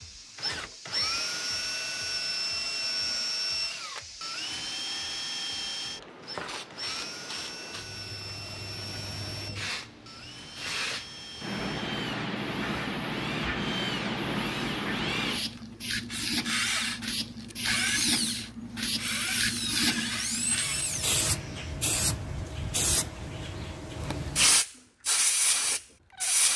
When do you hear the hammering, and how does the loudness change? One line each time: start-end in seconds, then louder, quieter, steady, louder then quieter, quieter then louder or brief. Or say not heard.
not heard.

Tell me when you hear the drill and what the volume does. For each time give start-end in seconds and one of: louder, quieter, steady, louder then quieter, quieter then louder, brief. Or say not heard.
0.0-21.7 quieter then louder.